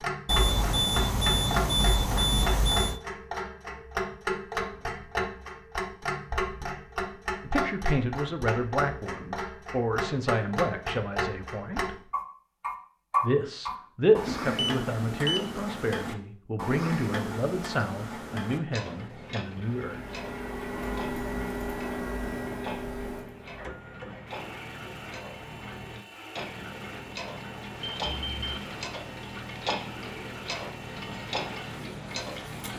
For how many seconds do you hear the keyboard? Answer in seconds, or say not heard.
not heard.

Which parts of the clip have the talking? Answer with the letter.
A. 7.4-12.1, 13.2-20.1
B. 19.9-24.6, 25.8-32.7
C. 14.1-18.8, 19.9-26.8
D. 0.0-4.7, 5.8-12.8
A.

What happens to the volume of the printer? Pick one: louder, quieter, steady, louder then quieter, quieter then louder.
quieter.